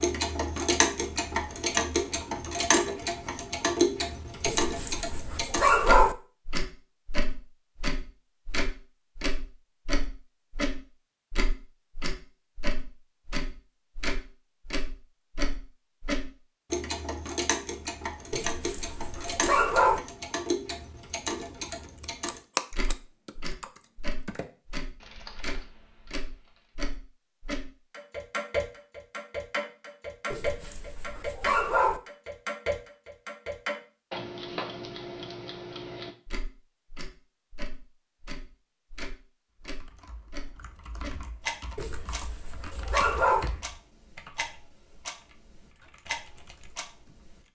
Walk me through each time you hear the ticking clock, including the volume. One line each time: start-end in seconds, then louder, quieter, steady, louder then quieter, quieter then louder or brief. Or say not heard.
0.0-47.5 quieter.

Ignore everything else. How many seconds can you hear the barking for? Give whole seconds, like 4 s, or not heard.
7 s.